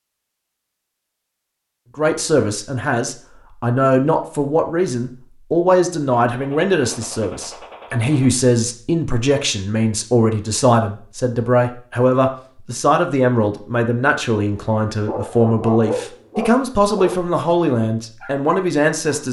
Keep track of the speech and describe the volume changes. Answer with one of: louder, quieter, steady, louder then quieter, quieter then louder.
steady.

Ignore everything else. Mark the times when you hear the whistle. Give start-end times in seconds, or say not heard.
not heard.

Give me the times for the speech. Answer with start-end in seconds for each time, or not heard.
1.9-19.2.